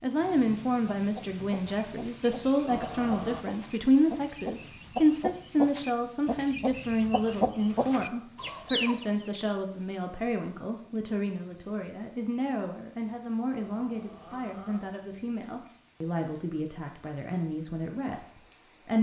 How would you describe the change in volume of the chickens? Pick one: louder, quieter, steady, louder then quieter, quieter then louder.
louder.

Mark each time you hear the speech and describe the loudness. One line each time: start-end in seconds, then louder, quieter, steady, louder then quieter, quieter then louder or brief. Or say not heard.
0.0-18.9 quieter.